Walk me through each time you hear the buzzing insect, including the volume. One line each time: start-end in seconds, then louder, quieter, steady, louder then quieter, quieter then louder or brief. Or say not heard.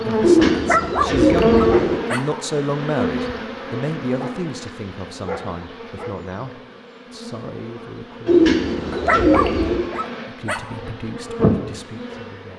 0.0-12.5 quieter then louder.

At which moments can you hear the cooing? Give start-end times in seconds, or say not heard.
0.2-2.0, 8.2-9.8.